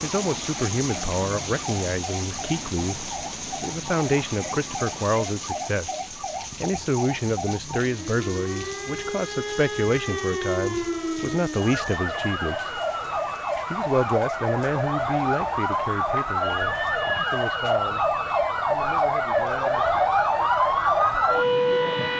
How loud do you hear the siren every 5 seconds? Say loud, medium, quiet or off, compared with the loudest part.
quiet, quiet, medium, loud, loud.